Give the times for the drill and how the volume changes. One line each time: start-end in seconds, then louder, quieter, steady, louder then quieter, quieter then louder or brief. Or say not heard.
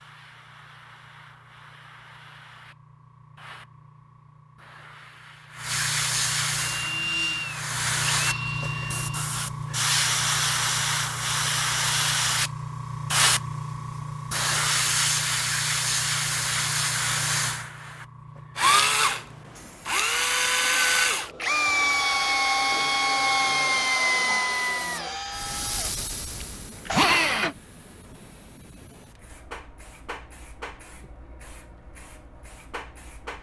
6.6-9.2 brief
18.6-27.6 steady.